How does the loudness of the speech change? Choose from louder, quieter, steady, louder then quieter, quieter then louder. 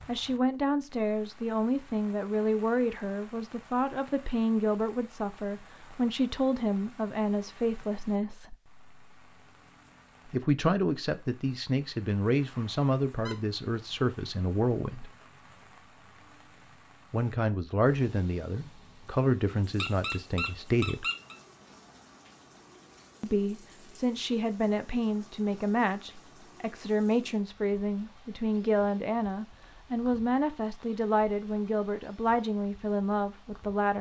steady.